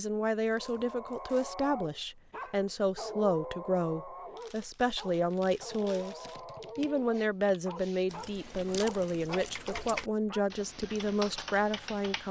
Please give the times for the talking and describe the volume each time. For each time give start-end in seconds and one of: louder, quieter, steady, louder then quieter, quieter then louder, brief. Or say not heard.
0.0-12.2 steady.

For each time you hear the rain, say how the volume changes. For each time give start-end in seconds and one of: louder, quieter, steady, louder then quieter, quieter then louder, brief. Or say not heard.
not heard.